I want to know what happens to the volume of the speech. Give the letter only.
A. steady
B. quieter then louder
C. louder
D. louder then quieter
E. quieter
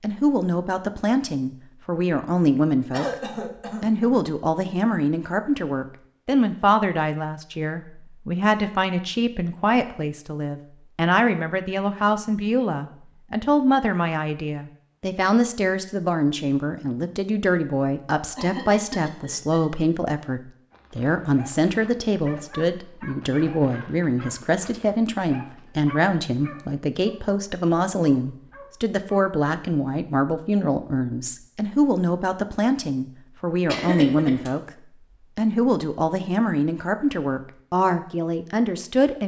A.